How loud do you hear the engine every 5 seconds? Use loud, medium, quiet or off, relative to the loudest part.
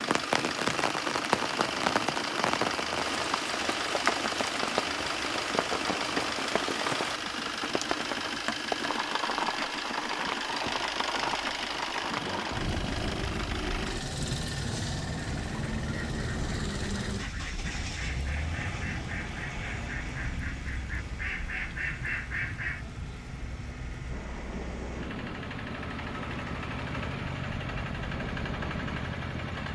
loud, loud, loud, loud, medium, loud.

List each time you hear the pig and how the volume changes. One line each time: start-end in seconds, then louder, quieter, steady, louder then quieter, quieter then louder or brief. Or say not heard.
not heard.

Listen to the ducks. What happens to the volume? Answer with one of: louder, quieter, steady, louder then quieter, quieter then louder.
louder.